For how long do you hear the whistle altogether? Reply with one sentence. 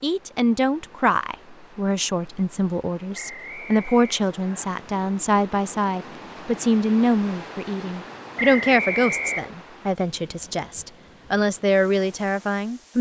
You can hear the whistle for 3 seconds altogether.